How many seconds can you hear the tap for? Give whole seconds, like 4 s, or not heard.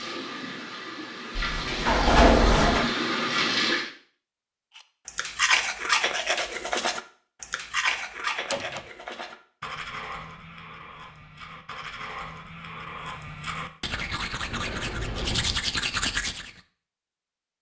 4 s.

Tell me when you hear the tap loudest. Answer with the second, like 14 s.
3 s.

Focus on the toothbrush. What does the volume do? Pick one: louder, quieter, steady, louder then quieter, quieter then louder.
quieter then louder.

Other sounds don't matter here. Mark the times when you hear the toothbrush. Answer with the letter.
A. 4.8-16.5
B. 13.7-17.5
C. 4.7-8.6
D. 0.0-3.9
A.